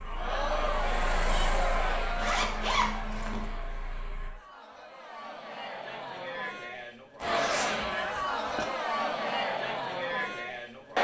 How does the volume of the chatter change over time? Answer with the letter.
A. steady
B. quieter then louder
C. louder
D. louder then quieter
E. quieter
B.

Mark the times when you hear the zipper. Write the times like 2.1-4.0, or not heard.
2.1-3.5, 7.2-8.7.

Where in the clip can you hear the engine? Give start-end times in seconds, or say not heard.
0.0-4.3.